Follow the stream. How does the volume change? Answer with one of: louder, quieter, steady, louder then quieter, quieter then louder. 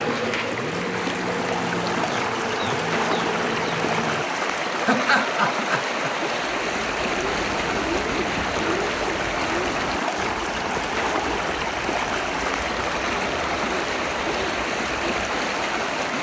steady.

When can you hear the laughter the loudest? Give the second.
5 s.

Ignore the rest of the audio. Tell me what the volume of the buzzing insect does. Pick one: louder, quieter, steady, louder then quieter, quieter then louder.
steady.